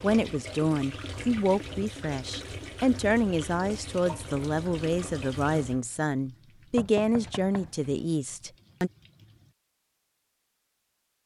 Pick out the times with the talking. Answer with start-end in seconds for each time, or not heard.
0.0-8.9.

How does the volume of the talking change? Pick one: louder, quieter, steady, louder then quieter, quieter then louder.
steady.